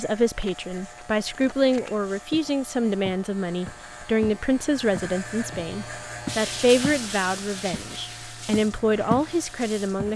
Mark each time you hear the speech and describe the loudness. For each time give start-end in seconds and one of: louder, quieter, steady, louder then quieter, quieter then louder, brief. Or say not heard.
0.0-10.1 steady.